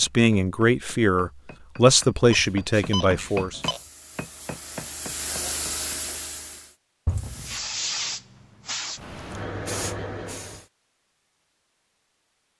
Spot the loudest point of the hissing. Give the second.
8 s.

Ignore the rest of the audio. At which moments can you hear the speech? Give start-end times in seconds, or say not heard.
0.0-3.6.